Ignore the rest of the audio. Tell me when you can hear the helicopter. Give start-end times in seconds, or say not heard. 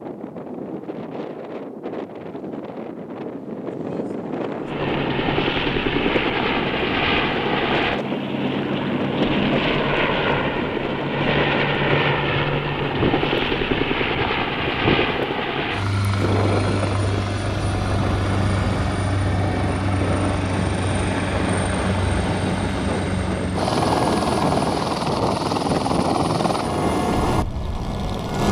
4.6-28.4.